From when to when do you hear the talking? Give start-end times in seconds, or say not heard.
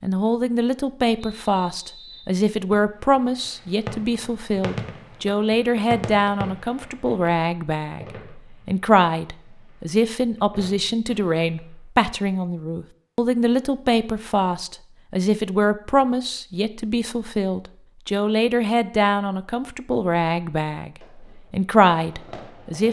0.0-22.8.